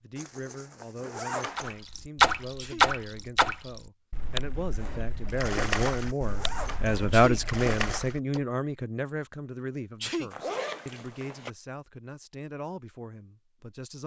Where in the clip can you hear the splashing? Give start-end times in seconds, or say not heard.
1.6-8.4.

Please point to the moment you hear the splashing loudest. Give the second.
2 s.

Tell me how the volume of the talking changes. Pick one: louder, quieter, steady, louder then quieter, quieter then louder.
louder then quieter.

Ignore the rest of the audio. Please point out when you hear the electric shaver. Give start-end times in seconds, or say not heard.
not heard.